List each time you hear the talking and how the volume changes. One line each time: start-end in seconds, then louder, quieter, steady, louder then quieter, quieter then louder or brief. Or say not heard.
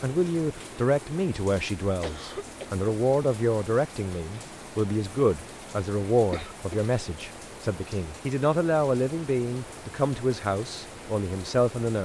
0.0-12.0 steady.